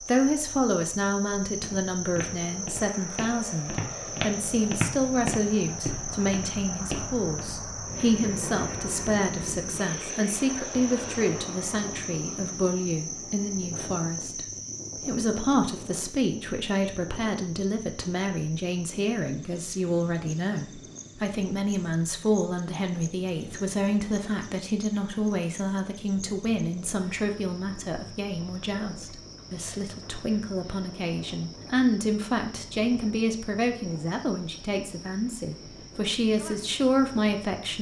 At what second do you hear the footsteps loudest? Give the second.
5 s.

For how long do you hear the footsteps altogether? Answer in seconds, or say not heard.
6 s.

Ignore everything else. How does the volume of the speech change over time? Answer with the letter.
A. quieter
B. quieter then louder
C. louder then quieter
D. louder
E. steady
E.